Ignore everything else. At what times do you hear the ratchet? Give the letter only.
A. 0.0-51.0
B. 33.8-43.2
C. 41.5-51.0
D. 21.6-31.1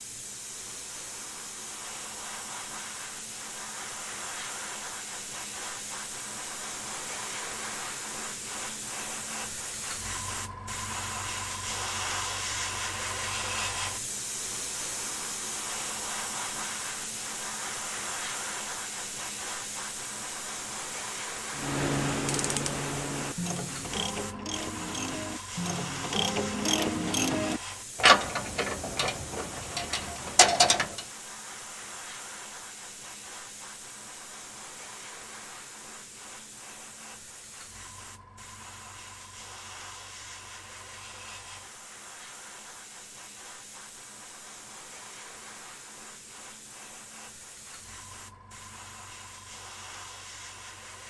D.